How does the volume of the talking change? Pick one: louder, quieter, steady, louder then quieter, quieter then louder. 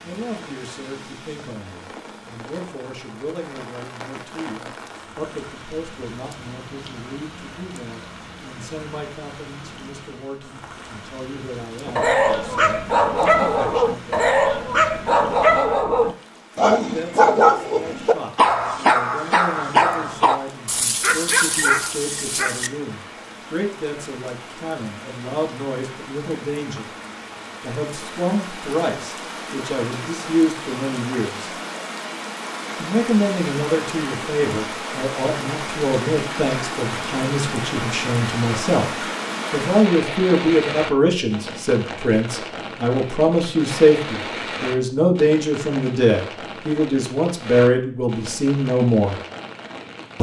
louder.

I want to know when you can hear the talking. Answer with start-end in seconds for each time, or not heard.
0.0-14.3, 16.6-26.9, 27.6-31.5, 32.8-49.2.